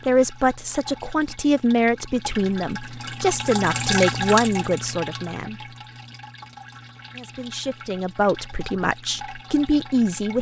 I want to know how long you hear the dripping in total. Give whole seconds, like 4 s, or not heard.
10 s.